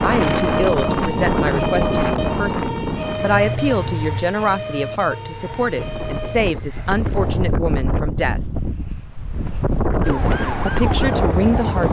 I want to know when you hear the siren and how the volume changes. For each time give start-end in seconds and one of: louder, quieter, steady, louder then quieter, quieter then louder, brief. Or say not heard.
0.0-6.5 quieter
10.0-11.8 brief.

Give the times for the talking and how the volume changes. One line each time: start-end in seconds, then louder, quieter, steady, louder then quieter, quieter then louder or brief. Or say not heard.
0.0-8.4 steady
10.1-11.8 brief.